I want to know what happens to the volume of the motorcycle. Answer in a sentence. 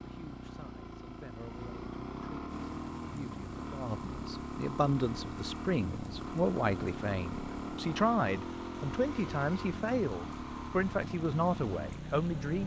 The volume of the motorcycle stays about the same.